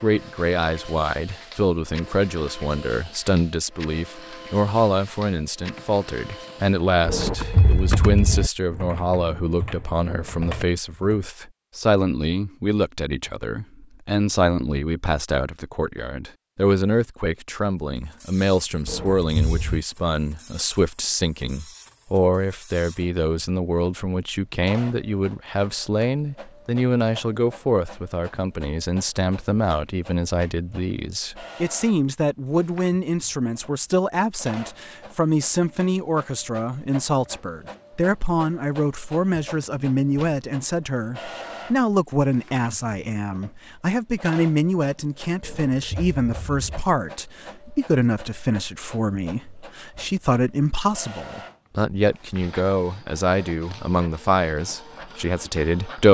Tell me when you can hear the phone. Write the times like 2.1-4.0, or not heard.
7.0-8.5, 18.9-19.8, 45.4-46.9.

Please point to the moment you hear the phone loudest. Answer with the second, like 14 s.
8 s.